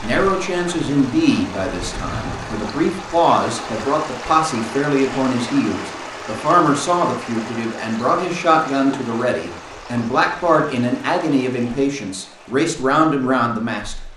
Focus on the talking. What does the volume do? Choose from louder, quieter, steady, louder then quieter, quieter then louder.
steady.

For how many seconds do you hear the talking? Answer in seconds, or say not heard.
14 s.